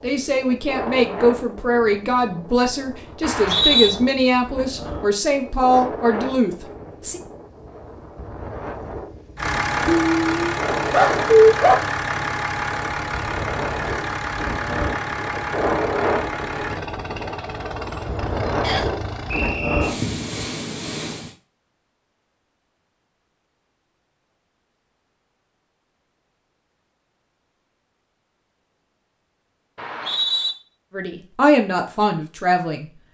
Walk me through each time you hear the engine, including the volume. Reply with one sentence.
You can hear the engine from 9.3 to 19.6 s, getting quieter.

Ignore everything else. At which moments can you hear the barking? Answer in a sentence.
The barking can be heard from 9.8 to 11.8 s.